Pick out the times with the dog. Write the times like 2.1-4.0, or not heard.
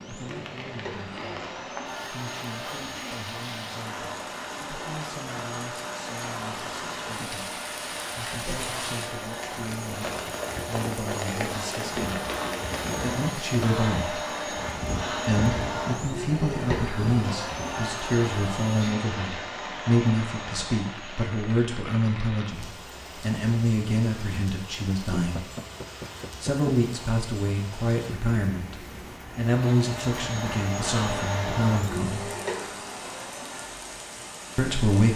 not heard.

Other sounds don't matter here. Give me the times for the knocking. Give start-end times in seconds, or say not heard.
25.1-26.7.